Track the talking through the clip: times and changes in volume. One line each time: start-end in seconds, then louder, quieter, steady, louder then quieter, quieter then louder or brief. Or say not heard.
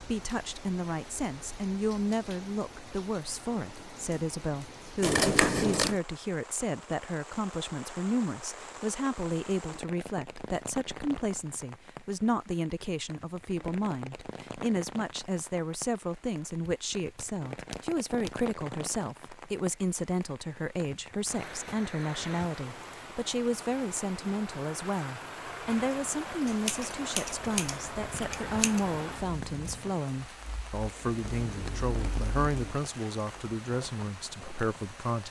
0.0-35.2 steady.